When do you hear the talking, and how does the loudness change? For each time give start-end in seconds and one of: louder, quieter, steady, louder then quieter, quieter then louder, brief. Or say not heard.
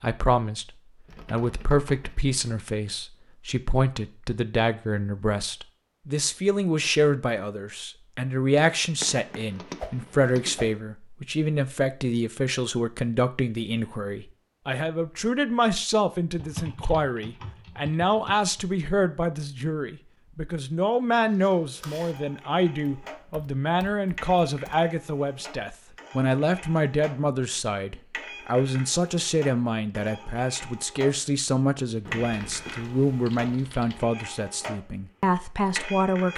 0.0-36.3 steady.